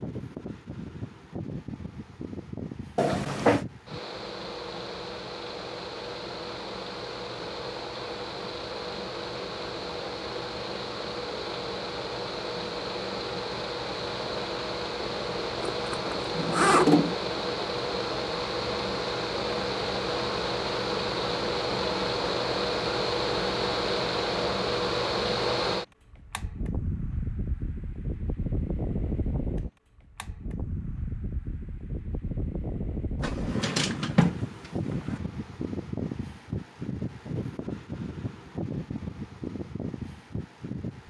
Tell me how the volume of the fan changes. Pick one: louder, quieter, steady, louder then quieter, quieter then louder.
louder then quieter.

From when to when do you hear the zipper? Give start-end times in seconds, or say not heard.
15.6-16.9.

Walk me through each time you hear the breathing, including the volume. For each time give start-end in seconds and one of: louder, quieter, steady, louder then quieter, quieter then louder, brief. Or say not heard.
not heard.